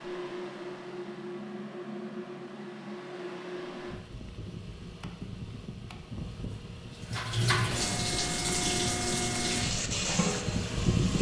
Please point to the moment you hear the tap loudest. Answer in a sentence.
The volume of the tap peaks at 8 seconds.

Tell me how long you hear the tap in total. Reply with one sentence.
You can hear the tap for 4 seconds altogether.